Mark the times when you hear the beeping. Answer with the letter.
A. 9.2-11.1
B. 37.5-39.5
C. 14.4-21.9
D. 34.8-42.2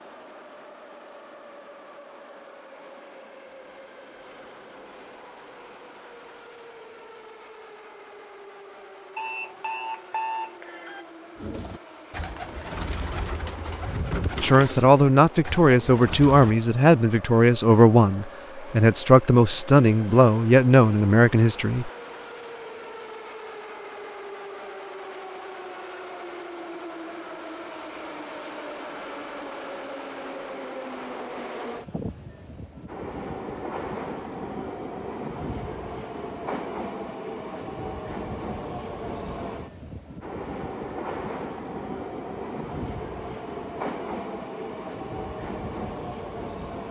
A.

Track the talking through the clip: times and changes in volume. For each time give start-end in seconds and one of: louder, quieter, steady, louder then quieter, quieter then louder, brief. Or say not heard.
14.4-21.9 steady.